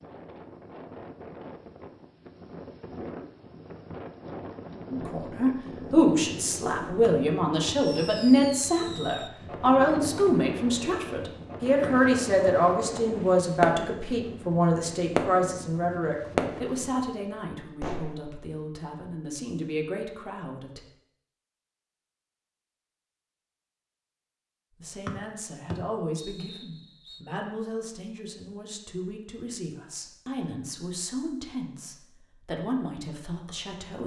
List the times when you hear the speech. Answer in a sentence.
The speech can be heard from 4.9 to 20.8 s and from 24.8 to 34.0 s.